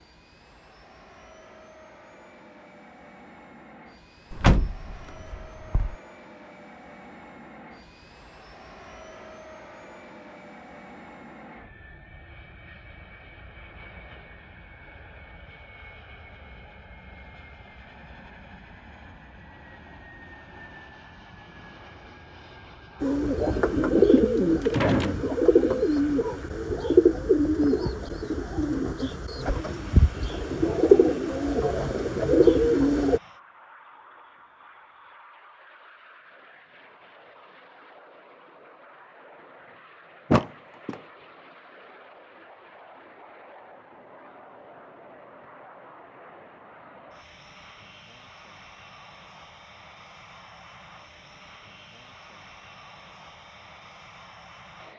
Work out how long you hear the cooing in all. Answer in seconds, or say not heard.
10 s.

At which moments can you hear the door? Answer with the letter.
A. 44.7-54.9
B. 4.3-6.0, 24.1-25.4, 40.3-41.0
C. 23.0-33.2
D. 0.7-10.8
B.